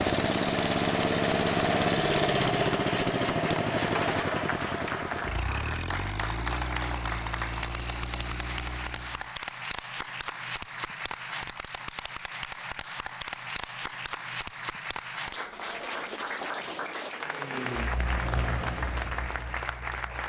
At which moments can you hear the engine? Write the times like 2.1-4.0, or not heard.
0.0-9.3, 17.1-20.2.